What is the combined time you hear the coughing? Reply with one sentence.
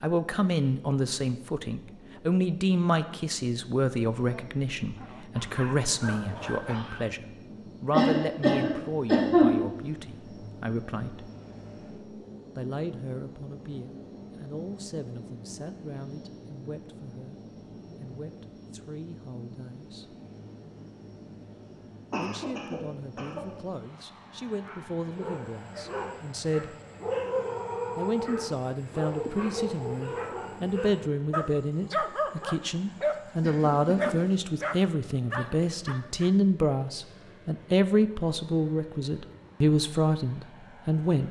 The coughing can be heard for 4 seconds in total.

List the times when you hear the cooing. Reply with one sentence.
The cooing can't be heard in this clip.